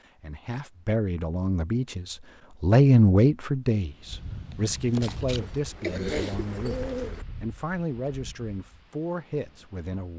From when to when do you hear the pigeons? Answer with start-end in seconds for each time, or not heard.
5.3-7.2.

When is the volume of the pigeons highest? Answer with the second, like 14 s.
7 s.